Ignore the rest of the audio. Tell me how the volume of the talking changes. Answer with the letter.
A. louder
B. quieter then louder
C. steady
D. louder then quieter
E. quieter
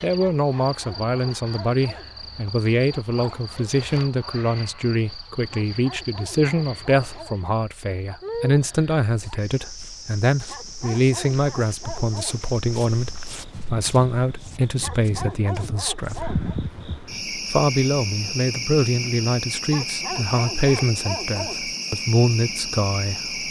C.